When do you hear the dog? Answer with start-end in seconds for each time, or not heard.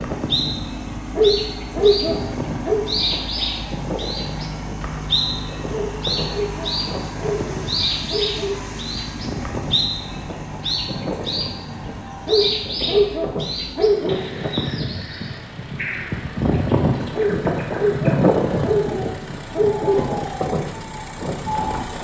1.1-2.9, 5.7-8.7, 12.2-14.2, 17.1-20.1.